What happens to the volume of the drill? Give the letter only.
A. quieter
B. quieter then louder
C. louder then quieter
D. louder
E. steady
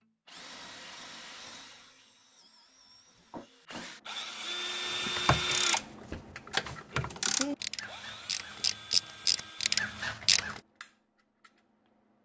C.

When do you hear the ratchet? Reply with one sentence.
The ratchet can be heard from 4.8 to 10.6 s.